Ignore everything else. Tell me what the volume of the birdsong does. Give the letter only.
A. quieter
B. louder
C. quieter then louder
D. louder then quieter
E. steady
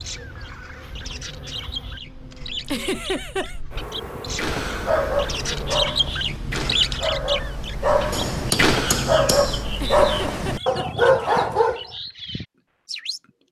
D.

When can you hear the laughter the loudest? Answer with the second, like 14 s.
3 s.